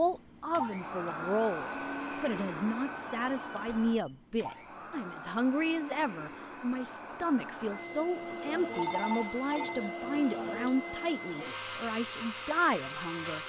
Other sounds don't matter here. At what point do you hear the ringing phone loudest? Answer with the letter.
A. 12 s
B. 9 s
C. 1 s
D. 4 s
B.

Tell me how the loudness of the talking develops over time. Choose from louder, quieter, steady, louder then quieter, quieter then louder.
steady.